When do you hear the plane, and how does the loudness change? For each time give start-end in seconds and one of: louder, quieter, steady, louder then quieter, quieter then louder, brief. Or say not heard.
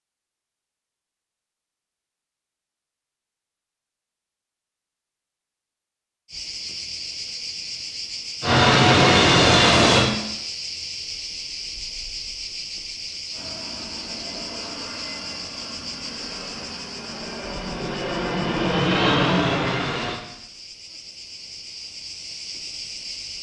8.4-10.1 brief
13.3-20.2 louder.